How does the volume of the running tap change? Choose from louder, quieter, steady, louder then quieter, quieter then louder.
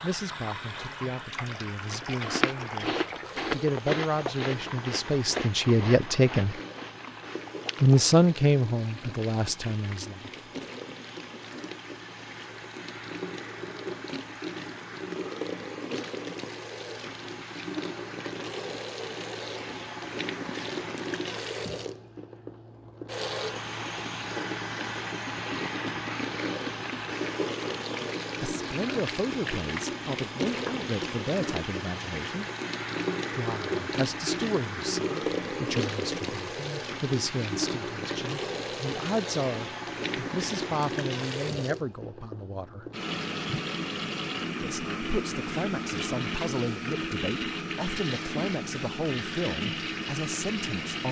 louder.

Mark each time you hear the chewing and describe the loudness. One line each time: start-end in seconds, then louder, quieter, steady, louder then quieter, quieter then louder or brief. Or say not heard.
1.9-8.2 quieter.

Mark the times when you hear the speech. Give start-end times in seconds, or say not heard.
0.0-6.5, 7.8-10.3, 28.4-32.5, 33.4-42.9, 44.6-51.0.